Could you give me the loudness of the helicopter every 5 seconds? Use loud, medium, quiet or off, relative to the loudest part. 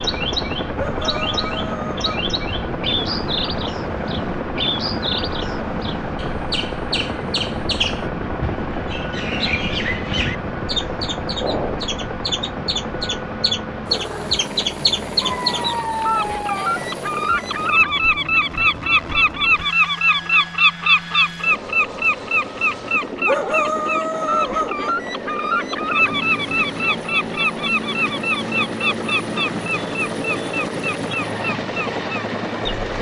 loud, loud, loud, medium, medium, loud, loud.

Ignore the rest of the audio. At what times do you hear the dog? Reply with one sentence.
You can hear the dog from 0.8 to 2.2 s, from 15.2 to 16.8 s and from 23.2 to 24.9 s.